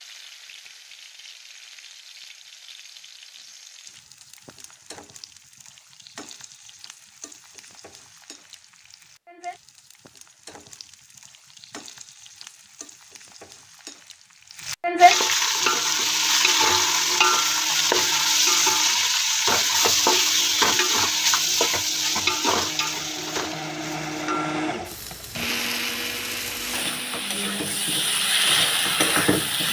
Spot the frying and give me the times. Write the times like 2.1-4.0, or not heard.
0.0-29.6.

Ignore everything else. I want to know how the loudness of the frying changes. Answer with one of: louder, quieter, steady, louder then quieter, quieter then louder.
louder then quieter.